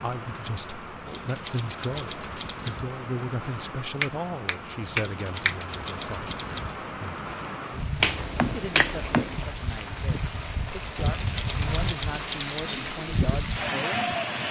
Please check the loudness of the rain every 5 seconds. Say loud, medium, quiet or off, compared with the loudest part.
medium, medium, loud.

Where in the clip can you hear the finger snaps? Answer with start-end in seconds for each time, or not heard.
4.0-5.5, 8.0-9.4.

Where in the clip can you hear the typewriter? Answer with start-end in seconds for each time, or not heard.
1.1-2.9, 5.0-6.8, 10.9-12.8.